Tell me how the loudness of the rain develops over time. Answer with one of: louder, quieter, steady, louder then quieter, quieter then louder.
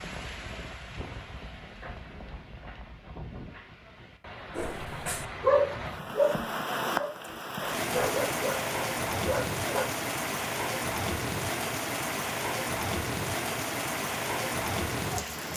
louder.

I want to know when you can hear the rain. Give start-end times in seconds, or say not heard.
0.0-15.5.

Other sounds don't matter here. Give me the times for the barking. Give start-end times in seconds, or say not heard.
4.5-10.0.